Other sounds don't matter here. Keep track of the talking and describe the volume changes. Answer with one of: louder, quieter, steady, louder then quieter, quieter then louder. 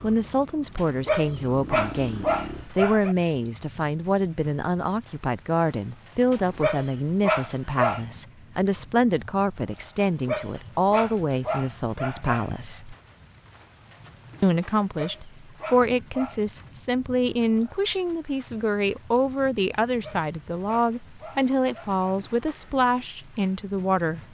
steady.